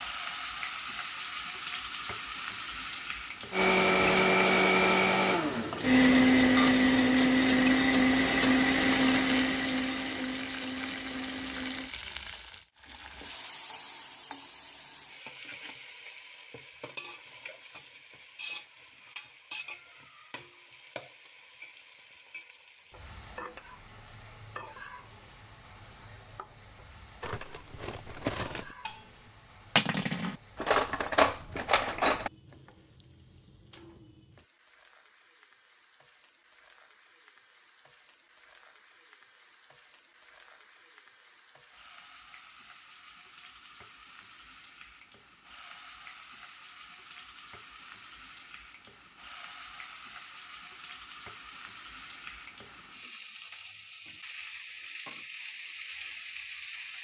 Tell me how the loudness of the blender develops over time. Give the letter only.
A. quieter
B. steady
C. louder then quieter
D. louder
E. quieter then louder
A.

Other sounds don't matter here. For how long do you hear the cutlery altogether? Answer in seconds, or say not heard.
5 s.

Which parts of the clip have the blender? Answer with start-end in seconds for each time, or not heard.
3.5-11.9.